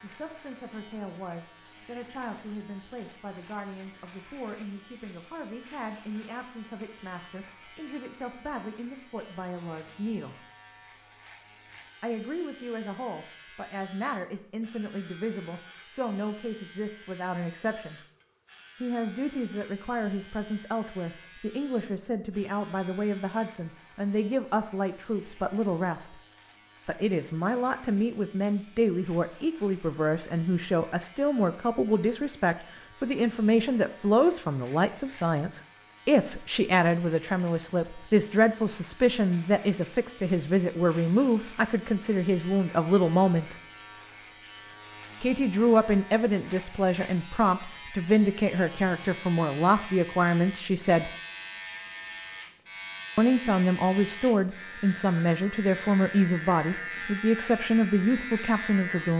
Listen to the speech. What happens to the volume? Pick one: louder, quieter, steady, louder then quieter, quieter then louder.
louder.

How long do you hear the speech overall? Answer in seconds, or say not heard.
52 s.